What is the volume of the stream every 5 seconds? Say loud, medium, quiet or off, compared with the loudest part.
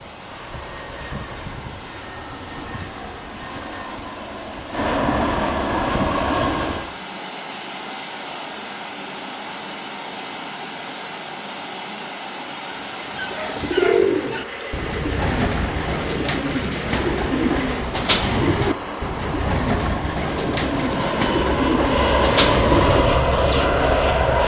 medium, loud, loud, loud, off.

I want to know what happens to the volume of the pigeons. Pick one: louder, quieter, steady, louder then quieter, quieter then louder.
steady.